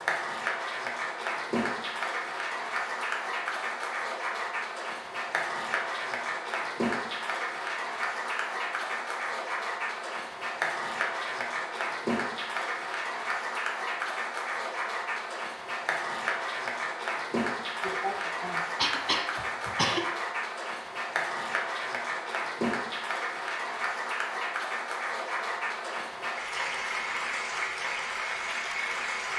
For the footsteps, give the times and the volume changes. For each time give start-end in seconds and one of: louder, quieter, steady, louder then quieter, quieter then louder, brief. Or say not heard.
not heard.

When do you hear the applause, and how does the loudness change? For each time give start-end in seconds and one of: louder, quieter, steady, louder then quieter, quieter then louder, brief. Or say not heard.
0.0-29.3 steady.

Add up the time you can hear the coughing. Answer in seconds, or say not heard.
2 s.